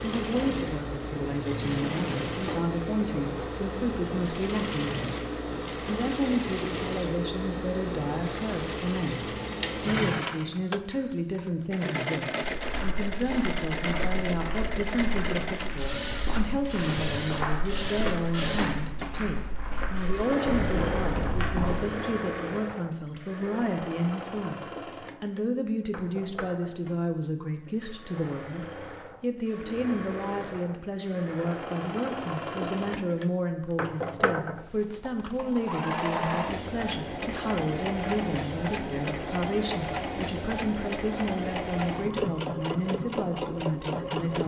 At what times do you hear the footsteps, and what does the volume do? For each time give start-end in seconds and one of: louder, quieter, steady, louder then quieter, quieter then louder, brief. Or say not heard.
12.6-21.9 louder.